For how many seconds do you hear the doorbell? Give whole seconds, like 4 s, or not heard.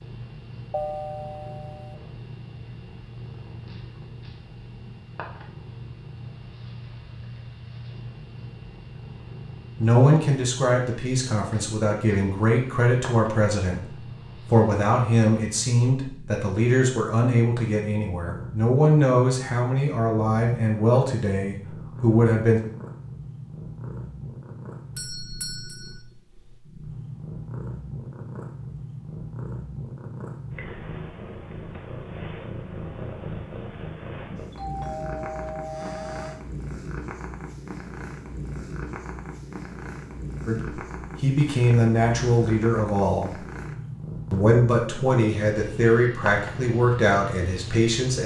4 s.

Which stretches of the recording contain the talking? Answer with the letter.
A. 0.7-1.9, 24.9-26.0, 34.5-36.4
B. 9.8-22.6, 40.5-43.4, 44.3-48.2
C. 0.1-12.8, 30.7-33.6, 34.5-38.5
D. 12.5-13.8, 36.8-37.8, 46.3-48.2
B.